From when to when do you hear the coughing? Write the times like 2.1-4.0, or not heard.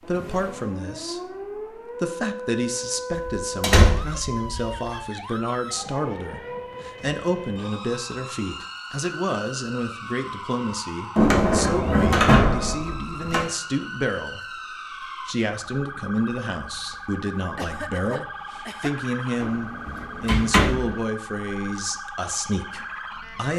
17.6-18.9.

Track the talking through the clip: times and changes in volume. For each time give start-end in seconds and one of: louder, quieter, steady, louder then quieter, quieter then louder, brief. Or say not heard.
0.0-23.5 steady.